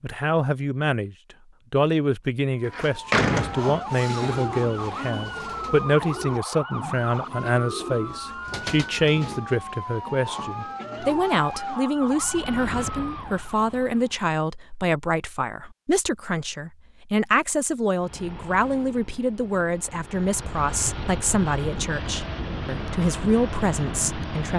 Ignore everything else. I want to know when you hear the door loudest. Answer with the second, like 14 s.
3 s.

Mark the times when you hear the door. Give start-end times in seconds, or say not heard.
2.6-4.5.